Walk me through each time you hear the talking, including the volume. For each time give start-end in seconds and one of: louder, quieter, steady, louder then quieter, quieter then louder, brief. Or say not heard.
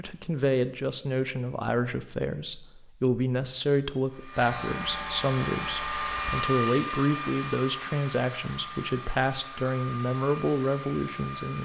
0.0-11.5 steady.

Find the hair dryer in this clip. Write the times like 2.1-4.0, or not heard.
4.0-11.5.